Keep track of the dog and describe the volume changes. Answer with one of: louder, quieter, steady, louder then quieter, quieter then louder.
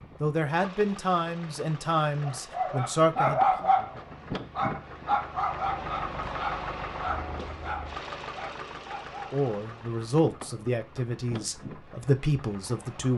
quieter.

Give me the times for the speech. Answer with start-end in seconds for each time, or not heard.
0.2-3.7, 9.3-13.1.